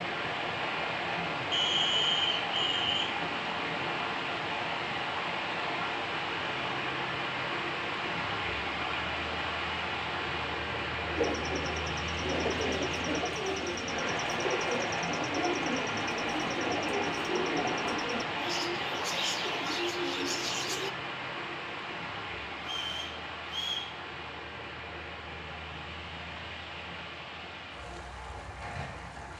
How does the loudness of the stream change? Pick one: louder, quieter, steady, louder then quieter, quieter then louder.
quieter.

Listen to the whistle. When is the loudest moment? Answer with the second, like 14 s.
2 s.